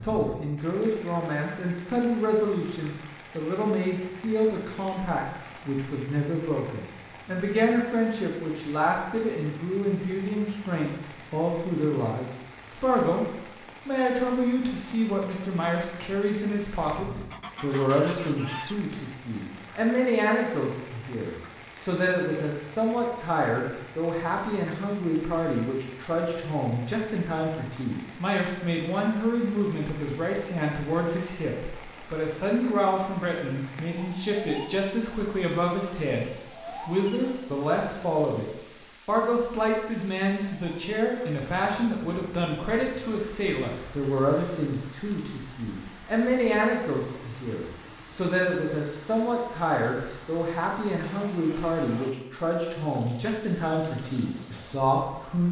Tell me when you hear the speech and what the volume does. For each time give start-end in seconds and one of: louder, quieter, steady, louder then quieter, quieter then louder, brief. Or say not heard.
0.0-13.2 steady
13.8-38.5 steady
39.0-55.4 steady.